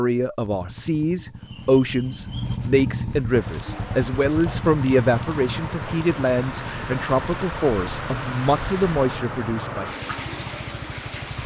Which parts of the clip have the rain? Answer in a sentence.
You can hear the rain from 3.3 to 11.4 s.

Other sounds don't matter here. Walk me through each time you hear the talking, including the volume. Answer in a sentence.
The talking can be heard from 0.0 to 9.9 s, at a steady volume.